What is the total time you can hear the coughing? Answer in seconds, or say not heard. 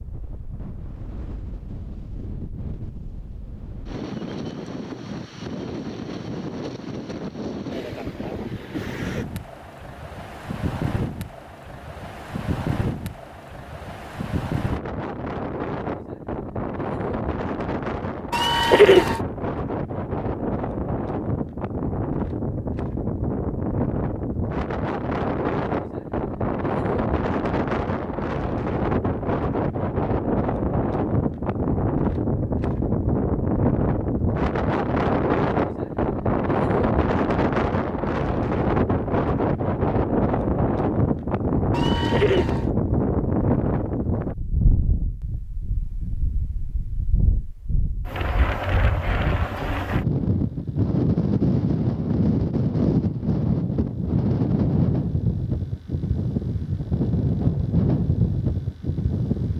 2 s.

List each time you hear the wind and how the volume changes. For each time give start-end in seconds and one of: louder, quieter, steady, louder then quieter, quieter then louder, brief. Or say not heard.
0.0-59.5 louder.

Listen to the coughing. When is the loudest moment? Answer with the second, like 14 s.
19 s.